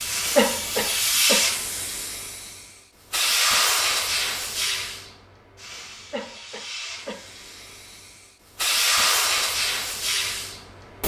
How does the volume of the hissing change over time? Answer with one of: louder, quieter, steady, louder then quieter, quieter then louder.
quieter then louder.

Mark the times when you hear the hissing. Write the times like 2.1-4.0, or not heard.
0.0-11.0.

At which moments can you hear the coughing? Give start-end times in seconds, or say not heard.
0.3-1.4, 6.1-7.2.